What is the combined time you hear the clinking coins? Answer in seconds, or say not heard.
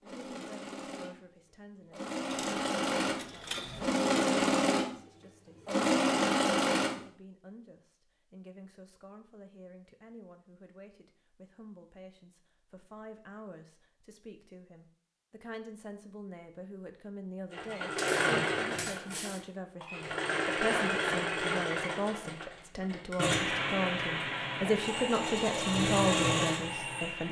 3 s.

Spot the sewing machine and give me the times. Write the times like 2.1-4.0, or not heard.
0.0-7.0, 17.5-27.2.